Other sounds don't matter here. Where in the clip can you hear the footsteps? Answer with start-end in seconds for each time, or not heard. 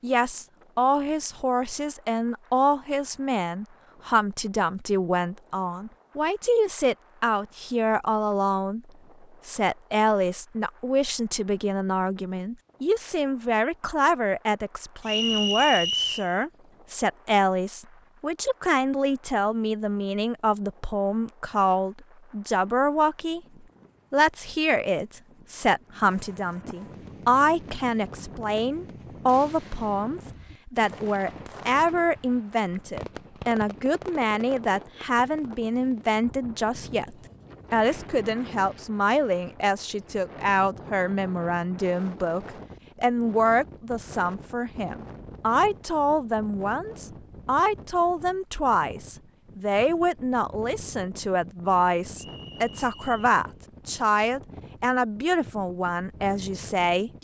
not heard.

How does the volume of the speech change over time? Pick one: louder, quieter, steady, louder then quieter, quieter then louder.
steady.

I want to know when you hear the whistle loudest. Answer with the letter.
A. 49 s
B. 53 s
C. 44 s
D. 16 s
D.